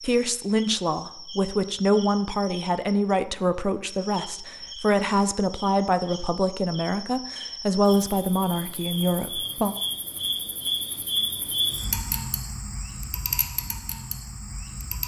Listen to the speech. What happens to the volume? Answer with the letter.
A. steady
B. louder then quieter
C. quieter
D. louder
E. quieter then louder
A.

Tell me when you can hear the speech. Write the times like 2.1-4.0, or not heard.
0.0-9.8.